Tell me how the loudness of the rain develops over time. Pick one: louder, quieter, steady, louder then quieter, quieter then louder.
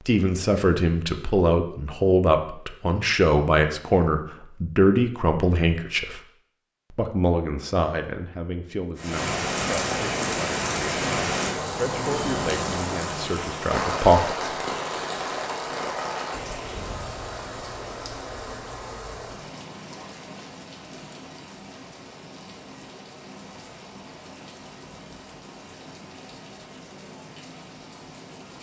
quieter.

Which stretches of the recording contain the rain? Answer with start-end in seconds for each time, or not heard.
8.9-28.5.